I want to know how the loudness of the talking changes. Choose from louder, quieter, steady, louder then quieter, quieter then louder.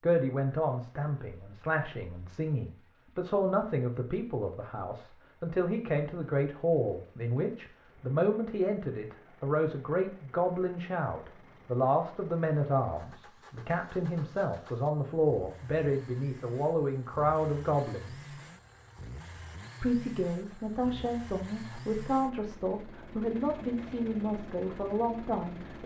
steady.